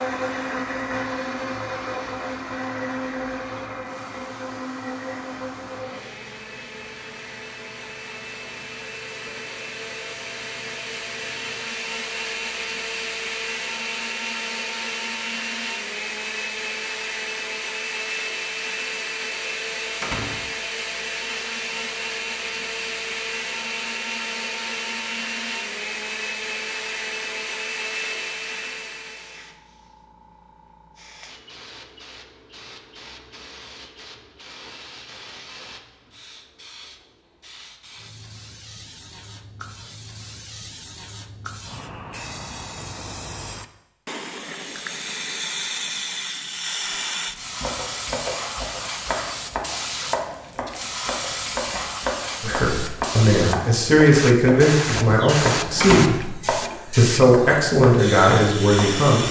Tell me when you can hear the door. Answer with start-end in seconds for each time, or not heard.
20.0-20.4, 55.8-56.6.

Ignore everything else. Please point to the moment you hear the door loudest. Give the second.
56 s.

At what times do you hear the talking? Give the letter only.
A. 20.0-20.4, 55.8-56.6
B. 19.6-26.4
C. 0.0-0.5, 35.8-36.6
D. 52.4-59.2
D.